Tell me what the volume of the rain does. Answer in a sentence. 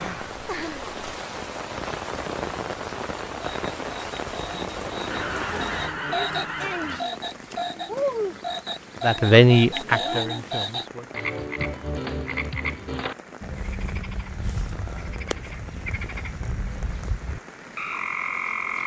The loudness of the rain goes down.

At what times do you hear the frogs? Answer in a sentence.
You can hear the frogs from 3.4 to 18.8 s.